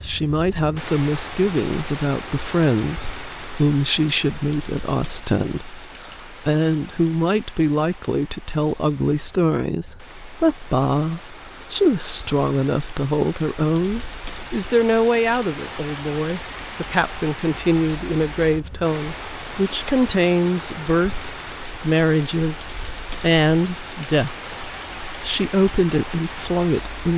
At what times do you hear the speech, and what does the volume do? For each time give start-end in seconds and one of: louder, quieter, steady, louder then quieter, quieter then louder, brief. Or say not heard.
0.0-27.1 steady.